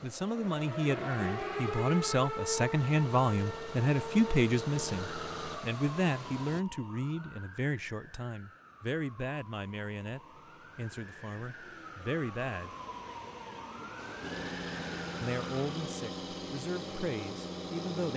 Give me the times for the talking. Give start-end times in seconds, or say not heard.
0.0-12.8, 15.2-18.1.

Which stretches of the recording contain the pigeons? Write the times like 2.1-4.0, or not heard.
not heard.